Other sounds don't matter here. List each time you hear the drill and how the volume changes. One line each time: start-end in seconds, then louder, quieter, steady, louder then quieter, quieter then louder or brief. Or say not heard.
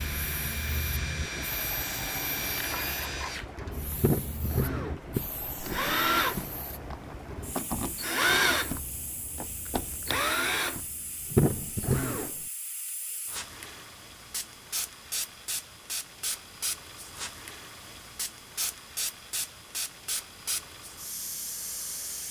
0.0-12.4 louder.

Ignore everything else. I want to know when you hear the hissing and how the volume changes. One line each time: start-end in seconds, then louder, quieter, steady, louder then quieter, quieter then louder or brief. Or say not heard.
0.0-22.2 quieter then louder.